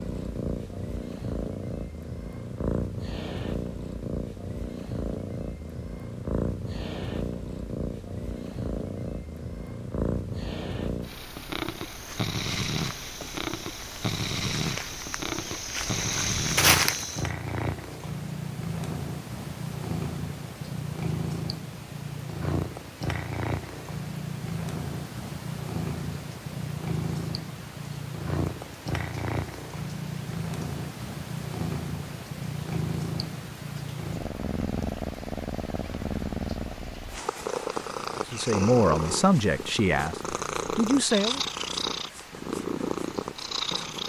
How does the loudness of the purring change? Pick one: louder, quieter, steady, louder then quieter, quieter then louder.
steady.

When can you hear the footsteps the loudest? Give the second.
17 s.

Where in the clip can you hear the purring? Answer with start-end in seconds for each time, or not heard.
0.0-44.0.